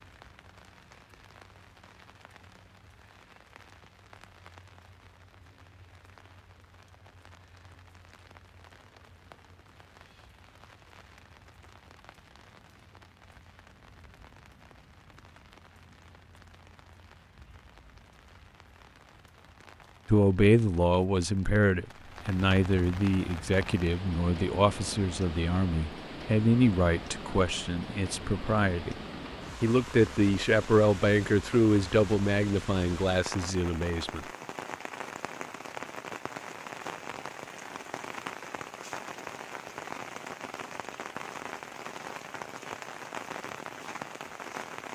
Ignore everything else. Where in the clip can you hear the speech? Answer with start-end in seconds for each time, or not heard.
20.1-28.9, 29.6-34.2.